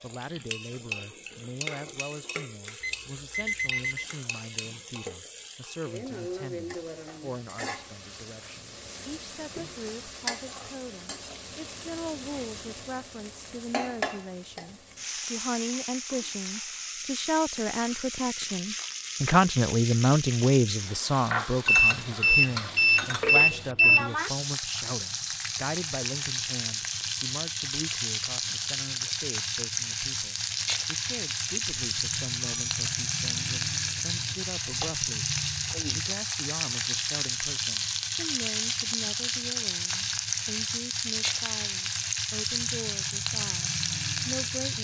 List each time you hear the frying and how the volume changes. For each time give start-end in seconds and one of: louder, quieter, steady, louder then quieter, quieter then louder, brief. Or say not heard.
0.0-44.7 louder.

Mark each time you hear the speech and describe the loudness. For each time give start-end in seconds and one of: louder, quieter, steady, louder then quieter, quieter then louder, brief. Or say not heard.
0.0-35.3 louder then quieter
35.9-44.7 steady.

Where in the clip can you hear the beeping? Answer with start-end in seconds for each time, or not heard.
2.8-4.0, 21.6-24.1, 31.8-32.6.